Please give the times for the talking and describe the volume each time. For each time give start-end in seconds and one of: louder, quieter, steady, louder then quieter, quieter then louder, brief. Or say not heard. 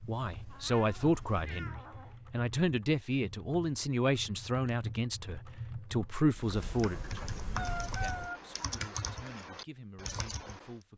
0.0-10.9 quieter.